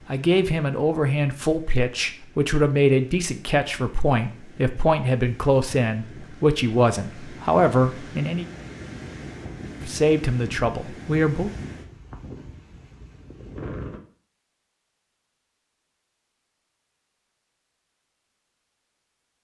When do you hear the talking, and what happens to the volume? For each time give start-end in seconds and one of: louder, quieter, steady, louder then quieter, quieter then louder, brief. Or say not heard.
0.1-8.4 steady
9.8-11.5 brief.